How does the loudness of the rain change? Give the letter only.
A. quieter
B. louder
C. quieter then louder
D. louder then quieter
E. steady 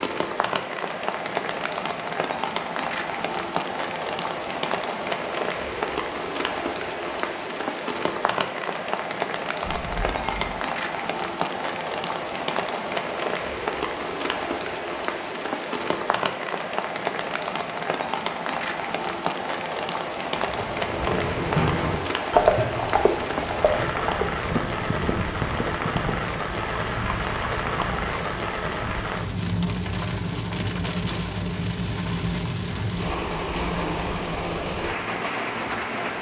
E.